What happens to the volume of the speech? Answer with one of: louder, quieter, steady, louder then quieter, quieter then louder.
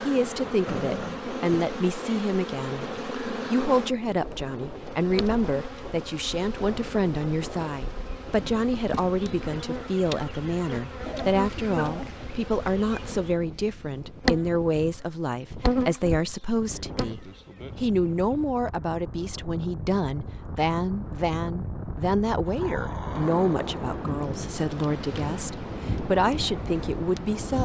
steady.